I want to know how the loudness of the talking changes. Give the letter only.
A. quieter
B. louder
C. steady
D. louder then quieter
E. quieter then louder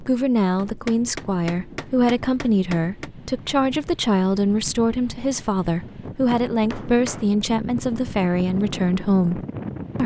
C.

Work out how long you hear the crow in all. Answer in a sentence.
You can't hear the crow here.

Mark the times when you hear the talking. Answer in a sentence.
You can hear the talking from 0.0 to 10.0 s.